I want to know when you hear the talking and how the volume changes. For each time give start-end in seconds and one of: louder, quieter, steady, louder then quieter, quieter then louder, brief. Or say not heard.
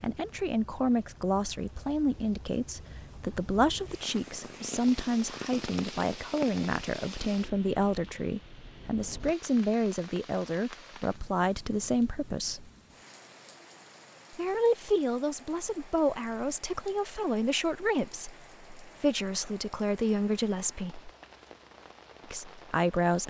0.0-12.7 steady
14.3-21.1 steady
22.3-23.2 brief.